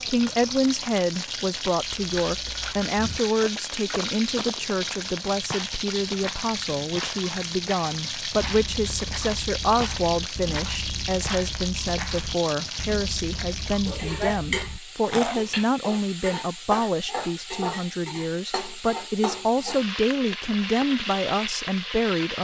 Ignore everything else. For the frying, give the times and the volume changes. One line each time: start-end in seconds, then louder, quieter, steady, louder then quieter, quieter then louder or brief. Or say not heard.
0.0-22.3 steady.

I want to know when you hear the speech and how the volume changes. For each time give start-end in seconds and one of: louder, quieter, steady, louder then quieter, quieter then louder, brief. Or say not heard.
0.1-22.3 steady.